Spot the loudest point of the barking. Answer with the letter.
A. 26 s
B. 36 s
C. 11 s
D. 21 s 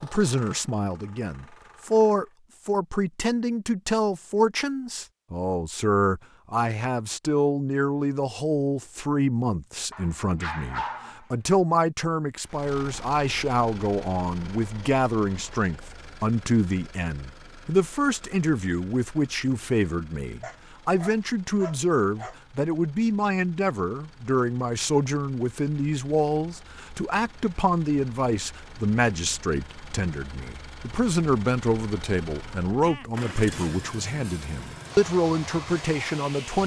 C.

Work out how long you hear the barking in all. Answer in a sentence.
You can hear the barking for 3 seconds altogether.